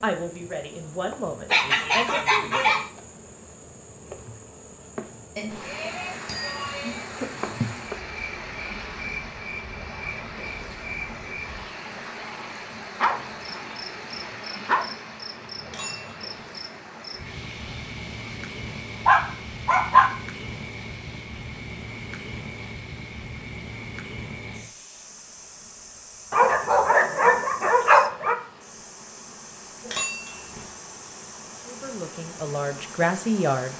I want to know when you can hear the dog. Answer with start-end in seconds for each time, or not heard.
1.5-2.9, 12.2-14.8, 19.1-20.1, 26.3-28.4.